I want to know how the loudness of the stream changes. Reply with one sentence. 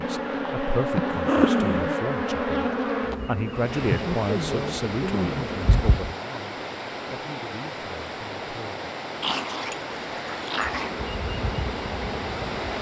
The volume of the stream stays about the same.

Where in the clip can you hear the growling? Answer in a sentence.
You can hear the growling from 1.2 to 2.0 s and from 9.2 to 10.9 s.